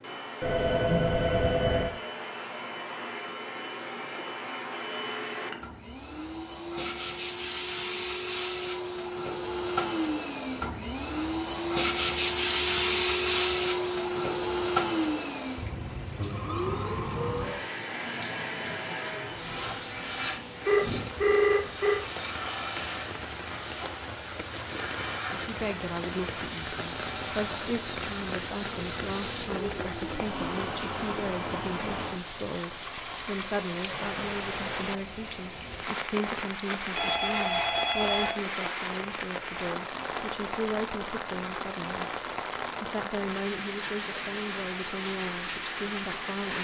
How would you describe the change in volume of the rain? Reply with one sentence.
The volume of the rain goes up.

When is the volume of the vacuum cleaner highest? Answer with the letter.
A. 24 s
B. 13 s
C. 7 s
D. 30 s
B.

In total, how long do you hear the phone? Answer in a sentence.
You can hear the phone for 4 seconds altogether.